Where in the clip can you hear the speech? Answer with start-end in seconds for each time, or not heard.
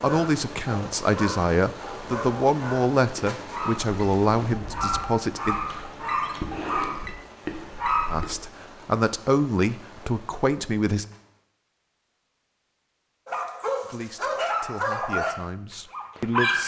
0.0-5.5, 8.1-11.1, 13.8-16.6.